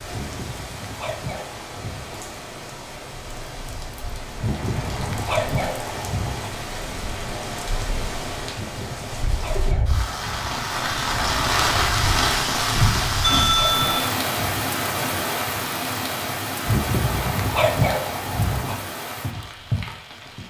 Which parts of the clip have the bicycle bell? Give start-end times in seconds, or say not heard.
13.2-14.1.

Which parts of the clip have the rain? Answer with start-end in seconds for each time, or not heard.
0.0-20.4.